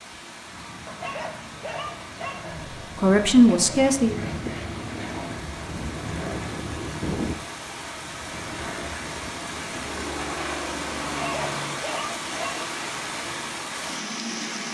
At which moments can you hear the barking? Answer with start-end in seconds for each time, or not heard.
0.8-2.4, 11.2-12.6.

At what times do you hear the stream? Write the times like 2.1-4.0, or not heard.
0.0-14.6.